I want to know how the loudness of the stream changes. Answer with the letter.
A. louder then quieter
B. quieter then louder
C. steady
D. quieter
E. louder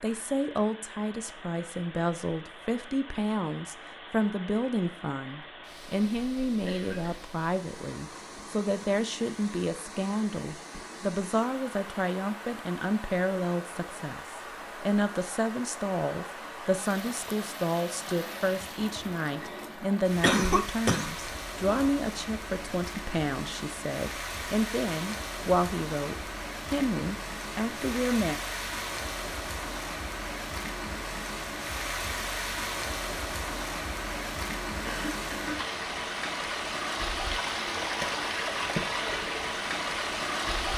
E.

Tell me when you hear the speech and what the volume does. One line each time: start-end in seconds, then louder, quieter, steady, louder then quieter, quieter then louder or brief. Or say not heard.
0.0-28.4 steady.